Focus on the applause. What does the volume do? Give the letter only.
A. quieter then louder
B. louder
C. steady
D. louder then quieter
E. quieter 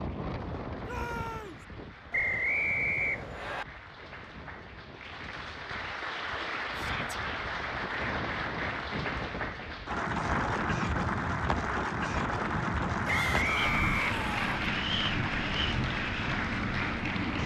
B.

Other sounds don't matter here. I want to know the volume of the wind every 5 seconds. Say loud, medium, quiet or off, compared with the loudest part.
medium, medium, loud, loud.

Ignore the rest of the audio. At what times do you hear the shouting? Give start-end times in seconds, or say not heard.
0.8-1.6, 6.8-7.2, 13.1-14.5.